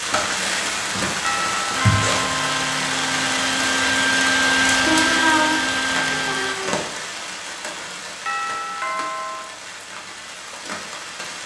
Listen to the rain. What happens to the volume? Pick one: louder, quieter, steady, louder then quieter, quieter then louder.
quieter.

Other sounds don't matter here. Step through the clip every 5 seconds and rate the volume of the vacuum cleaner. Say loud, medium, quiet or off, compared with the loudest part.
loud, loud, off.